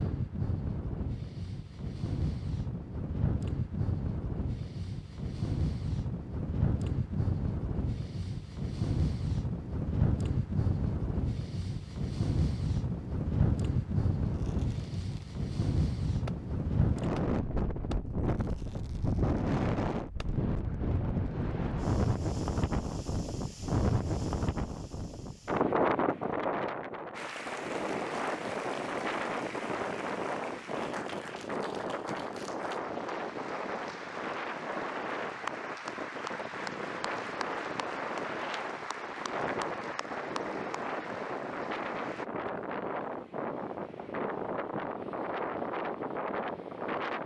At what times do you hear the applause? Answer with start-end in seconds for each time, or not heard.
27.1-42.2.